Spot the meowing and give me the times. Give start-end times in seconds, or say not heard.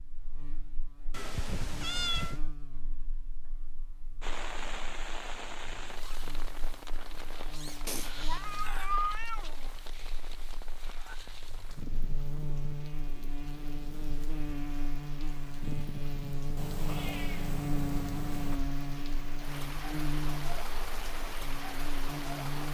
1.1-2.4, 7.8-9.7, 16.6-18.6.